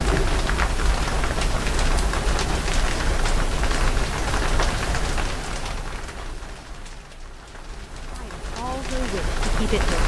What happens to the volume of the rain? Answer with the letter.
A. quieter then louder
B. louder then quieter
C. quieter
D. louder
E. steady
A.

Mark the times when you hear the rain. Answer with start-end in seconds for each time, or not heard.
0.0-10.0.